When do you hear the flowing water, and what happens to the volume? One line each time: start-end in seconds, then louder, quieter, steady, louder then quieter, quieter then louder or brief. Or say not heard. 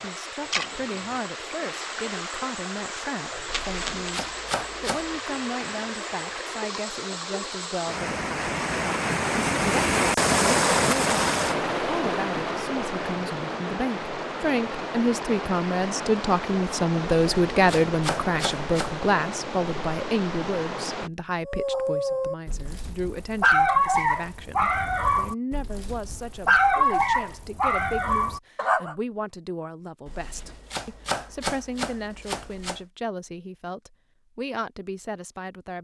0.0-21.1 louder then quieter.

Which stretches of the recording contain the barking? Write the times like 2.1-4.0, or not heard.
21.4-28.9.